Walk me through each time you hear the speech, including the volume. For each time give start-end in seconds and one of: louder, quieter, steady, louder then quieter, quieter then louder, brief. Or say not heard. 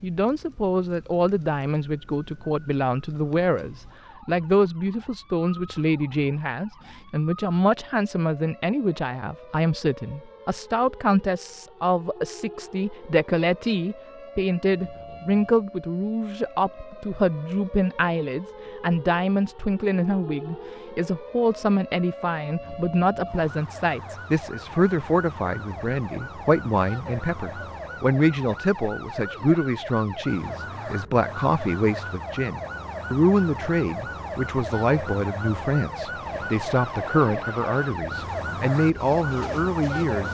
0.0-40.2 steady.